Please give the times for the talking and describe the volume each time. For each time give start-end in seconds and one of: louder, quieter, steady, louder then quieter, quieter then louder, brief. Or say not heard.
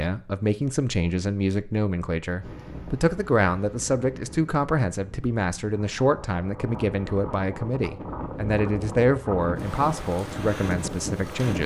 0.0-11.6 steady.